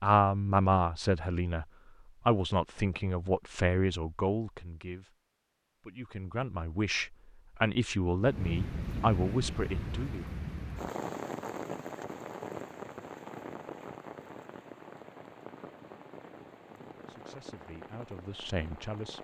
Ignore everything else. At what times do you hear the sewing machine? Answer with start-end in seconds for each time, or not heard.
not heard.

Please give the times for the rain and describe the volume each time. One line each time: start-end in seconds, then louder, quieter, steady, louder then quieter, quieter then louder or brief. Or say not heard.
8.2-19.1 quieter.